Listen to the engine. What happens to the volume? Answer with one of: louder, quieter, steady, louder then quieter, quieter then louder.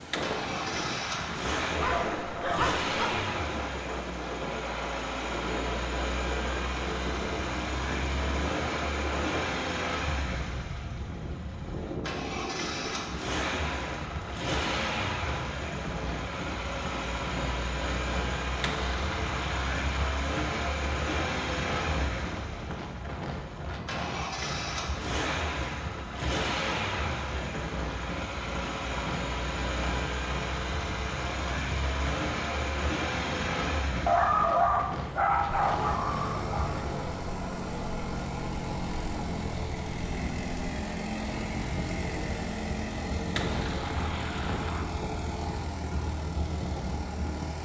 steady.